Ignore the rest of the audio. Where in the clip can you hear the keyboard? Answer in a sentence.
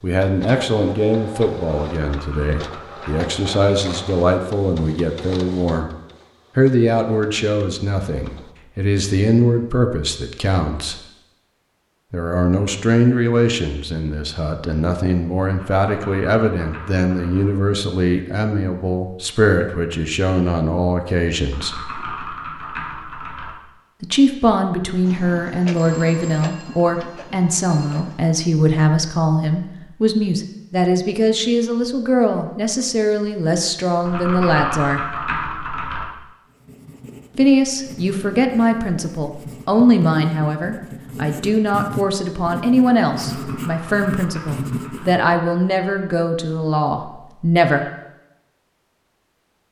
You can hear the keyboard from 2.0 to 3.4 s, from 15.5 to 17.5 s, from 21.5 to 23.6 s, from 34.0 to 36.0 s and from 43.1 to 45.1 s.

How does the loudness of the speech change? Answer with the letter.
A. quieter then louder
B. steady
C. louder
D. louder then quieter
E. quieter
B.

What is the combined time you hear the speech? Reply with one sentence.
You can hear the speech for 42 seconds altogether.